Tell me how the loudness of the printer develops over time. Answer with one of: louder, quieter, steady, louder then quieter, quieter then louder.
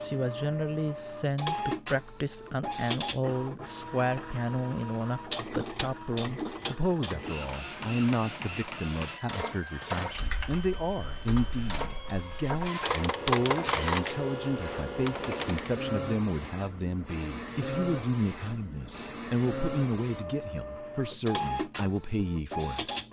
steady.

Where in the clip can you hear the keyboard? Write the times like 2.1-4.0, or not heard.
10.1-15.7.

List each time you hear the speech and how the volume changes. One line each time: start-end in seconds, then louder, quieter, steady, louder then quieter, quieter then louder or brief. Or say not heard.
0.0-22.9 steady.